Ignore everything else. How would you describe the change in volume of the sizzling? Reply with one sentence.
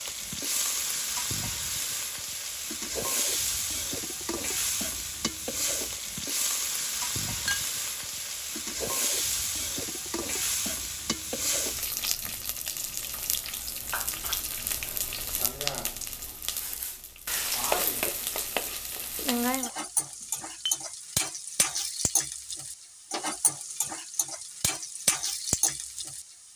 The loudness of the sizzling stays about the same.